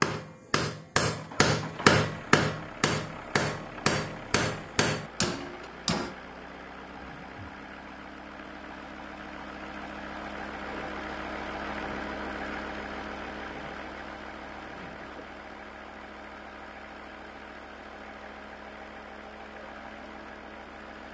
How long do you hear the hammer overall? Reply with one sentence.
The hammer can be heard for 6 seconds in total.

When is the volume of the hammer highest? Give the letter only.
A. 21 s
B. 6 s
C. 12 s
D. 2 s
D.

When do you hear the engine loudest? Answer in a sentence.
The volume of the engine peaks at 12 seconds.